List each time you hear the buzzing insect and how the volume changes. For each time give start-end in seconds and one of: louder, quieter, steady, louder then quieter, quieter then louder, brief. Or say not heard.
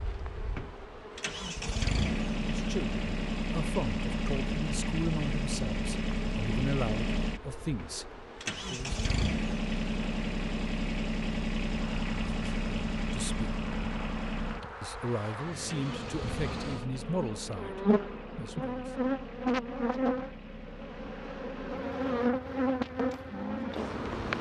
0.0-24.3 louder.